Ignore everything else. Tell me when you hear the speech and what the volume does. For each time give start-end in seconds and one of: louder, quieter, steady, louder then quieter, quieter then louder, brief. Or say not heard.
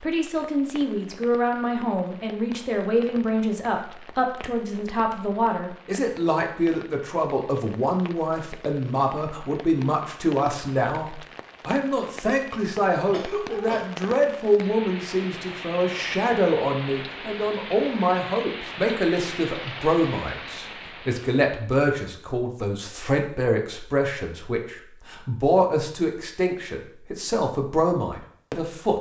0.0-28.9 steady.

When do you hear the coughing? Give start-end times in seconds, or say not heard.
13.1-13.8.